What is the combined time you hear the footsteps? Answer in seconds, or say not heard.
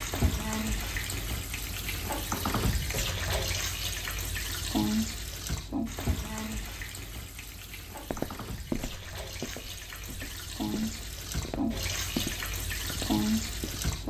6 s.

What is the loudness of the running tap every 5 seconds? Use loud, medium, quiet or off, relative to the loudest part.
loud, medium, loud.